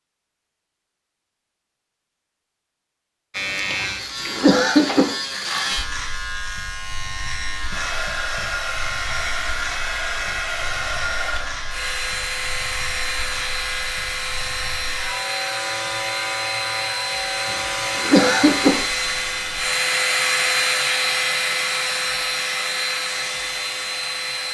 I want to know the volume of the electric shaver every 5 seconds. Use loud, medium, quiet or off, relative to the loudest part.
loud, loud, medium, loud, off.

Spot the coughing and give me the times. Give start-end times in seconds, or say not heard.
3.8-5.1, 17.4-18.9.